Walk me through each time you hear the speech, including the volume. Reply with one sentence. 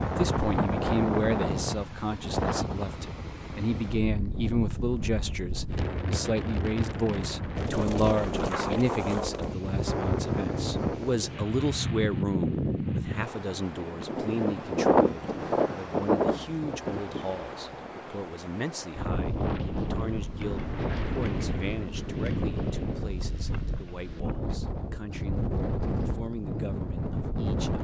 The speech can be heard from 0.0 to 27.7 s, getting quieter.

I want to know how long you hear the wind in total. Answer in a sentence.
You can hear the wind for 28 seconds altogether.